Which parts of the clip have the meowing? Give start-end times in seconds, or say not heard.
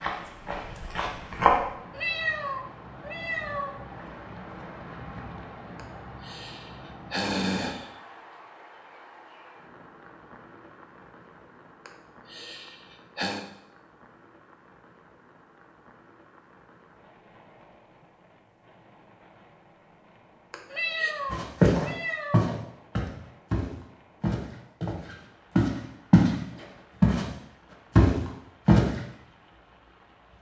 1.9-3.8, 20.7-22.5.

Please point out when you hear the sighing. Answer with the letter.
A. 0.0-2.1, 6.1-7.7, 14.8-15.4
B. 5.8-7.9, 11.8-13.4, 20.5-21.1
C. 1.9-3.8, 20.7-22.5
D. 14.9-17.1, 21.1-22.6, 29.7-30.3
B.